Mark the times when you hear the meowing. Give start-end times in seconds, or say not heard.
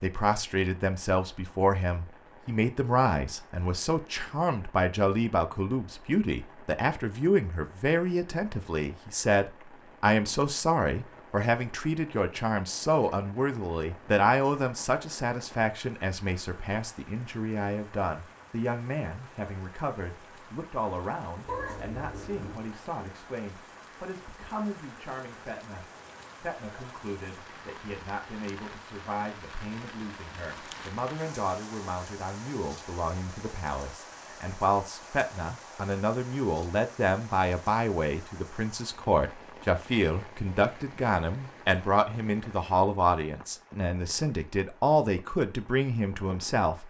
21.4-22.6.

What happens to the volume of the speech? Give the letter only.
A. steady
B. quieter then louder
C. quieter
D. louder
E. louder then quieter
B.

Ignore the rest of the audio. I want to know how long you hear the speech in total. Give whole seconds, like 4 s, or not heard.
47 s.